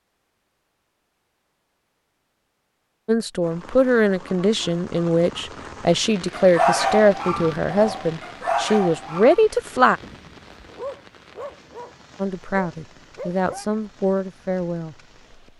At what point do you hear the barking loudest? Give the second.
7 s.